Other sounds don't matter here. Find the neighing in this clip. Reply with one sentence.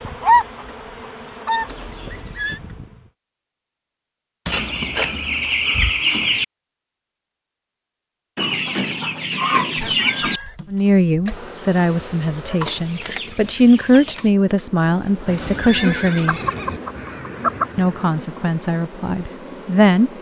You can hear the neighing from 1.6 to 2.6 s, from 9.8 to 10.6 s and from 15.2 to 16.8 s.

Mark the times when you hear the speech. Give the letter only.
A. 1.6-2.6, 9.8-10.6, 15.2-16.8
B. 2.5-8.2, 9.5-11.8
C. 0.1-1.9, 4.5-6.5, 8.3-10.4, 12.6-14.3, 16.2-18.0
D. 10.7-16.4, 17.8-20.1
D.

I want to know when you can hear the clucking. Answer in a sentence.
The clucking can be heard from 0.1 to 1.9 s, from 4.5 to 6.5 s, from 8.3 to 10.4 s, from 12.6 to 14.3 s and from 16.2 to 18.0 s.